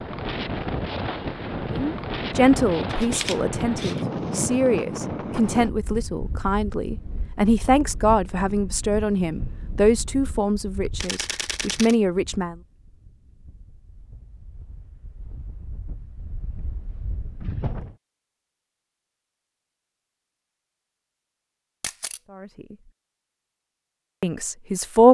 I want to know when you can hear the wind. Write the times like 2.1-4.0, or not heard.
0.0-17.9.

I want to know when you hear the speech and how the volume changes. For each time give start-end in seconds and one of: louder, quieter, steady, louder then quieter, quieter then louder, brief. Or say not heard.
1.7-12.6 steady
22.3-22.8 brief
24.2-25.0 brief.